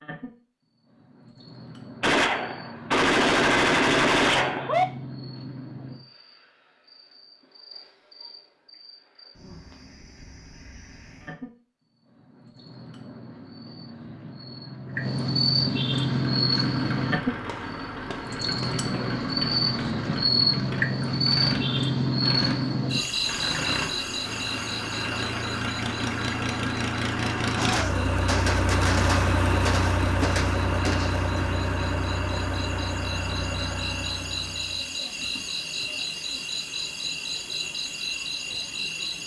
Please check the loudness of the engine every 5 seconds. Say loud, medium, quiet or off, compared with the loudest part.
off, off, off, medium, medium, loud, loud, off.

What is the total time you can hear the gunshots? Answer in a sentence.
You can hear the gunshots for 8 seconds altogether.